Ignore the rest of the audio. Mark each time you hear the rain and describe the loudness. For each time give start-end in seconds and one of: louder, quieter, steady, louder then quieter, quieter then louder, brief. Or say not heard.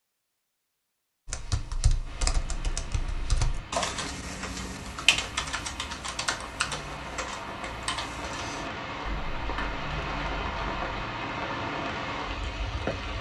2.0-13.1 louder.